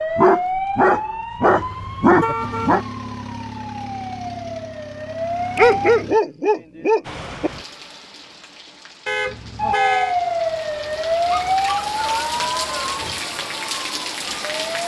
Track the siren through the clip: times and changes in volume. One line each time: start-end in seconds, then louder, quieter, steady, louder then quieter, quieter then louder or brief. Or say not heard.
0.0-6.0 quieter then louder
9.6-14.8 quieter.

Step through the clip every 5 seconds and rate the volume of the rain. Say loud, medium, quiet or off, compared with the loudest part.
off, medium, loud.